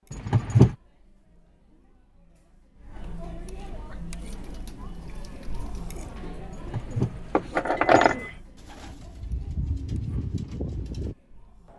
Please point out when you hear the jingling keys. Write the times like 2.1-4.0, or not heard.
0.1-0.8, 6.5-8.3.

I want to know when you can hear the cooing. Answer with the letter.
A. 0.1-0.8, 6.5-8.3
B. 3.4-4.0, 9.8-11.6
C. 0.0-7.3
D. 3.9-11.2
D.